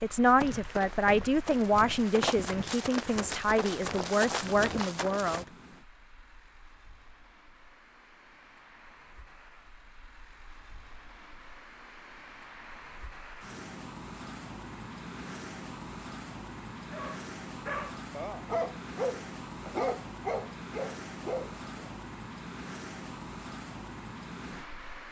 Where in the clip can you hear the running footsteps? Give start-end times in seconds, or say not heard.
0.2-5.5.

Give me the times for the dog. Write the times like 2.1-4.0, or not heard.
16.9-21.9.